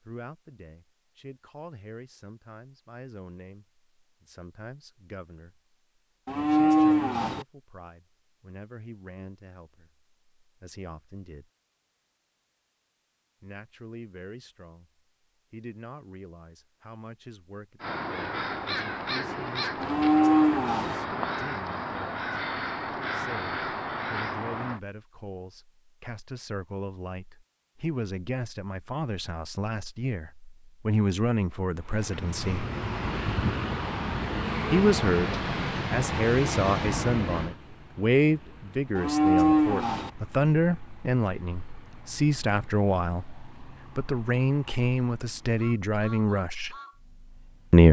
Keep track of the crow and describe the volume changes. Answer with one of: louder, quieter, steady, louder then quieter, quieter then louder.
steady.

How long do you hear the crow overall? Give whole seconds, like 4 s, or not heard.
7 s.